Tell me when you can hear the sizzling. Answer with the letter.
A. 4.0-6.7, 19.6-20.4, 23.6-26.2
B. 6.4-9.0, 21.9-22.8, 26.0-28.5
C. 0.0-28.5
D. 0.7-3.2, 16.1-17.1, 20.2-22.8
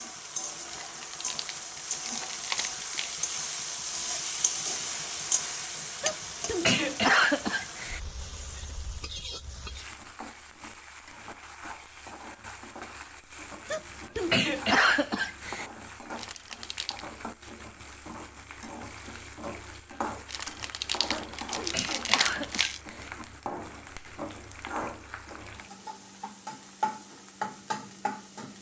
C.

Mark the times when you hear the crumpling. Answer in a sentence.
The crumpling can be heard from 0.7 to 3.2 s, from 16.1 to 17.1 s and from 20.2 to 22.8 s.